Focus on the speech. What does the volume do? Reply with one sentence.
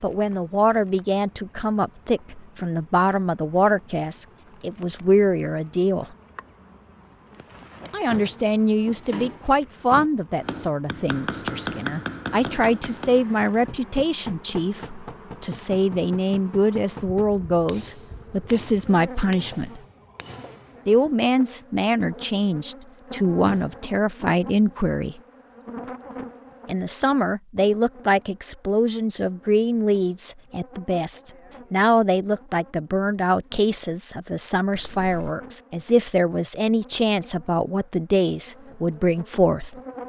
The loudness of the speech stays about the same.